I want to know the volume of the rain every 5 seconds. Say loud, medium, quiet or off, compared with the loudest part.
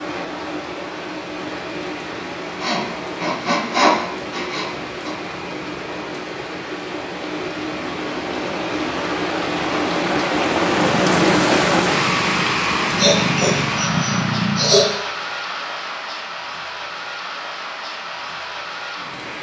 medium, medium, loud, medium.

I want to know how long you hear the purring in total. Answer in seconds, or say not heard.
4 s.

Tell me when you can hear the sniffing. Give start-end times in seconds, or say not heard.
2.6-5.2, 12.9-14.9.